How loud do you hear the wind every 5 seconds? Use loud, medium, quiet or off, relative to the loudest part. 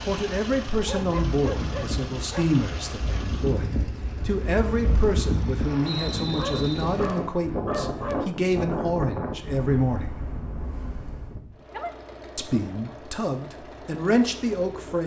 loud, loud, medium.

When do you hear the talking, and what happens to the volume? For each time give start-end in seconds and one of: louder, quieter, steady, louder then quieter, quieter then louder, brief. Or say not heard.
0.1-10.2 steady
12.3-15.0 brief.